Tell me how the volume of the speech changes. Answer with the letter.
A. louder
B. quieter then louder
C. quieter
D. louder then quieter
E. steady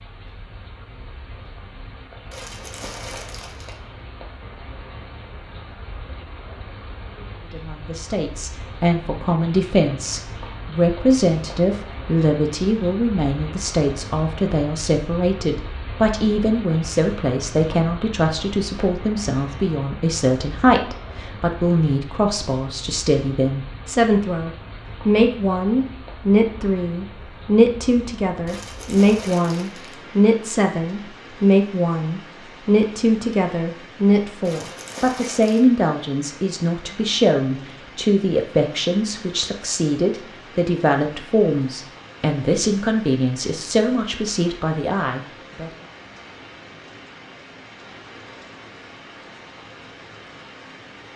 E.